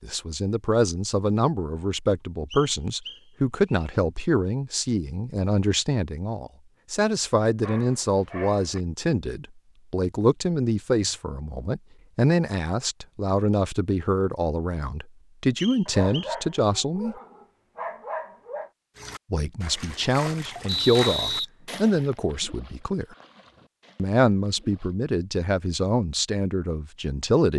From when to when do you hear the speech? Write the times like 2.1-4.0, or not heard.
0.0-17.1, 19.3-23.1, 23.9-27.5.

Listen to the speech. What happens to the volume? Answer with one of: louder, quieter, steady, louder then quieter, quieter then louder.
steady.